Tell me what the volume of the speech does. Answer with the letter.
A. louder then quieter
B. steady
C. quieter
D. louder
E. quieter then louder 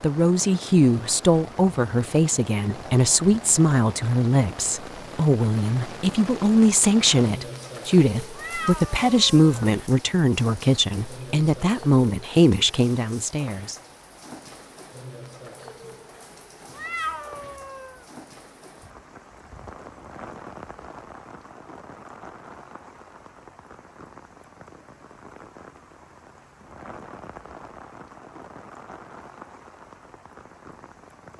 B.